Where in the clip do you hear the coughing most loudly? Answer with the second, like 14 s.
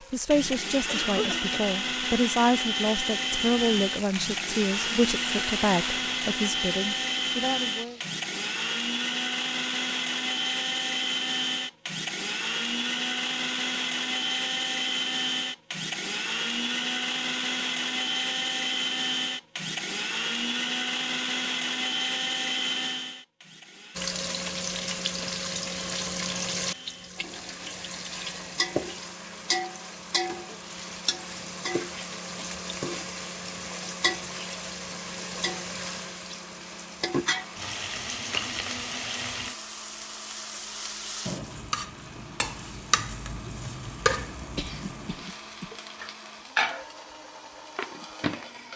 1 s.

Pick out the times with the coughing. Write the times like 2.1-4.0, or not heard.
0.8-1.6, 44.5-45.7.